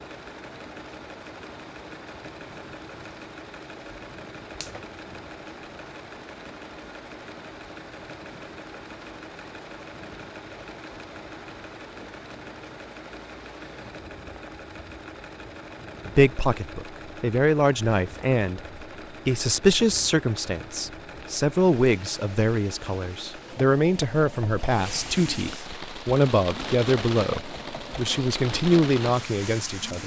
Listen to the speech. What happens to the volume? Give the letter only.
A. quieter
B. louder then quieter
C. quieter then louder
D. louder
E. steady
E.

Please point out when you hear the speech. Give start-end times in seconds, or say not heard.
16.1-30.0.